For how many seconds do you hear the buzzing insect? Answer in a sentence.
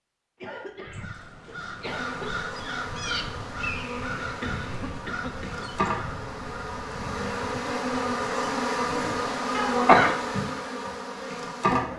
The buzzing insect can be heard for 10 seconds in total.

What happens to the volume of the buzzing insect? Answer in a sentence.
The loudness of the buzzing insect goes up.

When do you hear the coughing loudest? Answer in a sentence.
The volume of the coughing peaks at 10 seconds.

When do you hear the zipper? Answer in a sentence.
You can't hear the zipper here.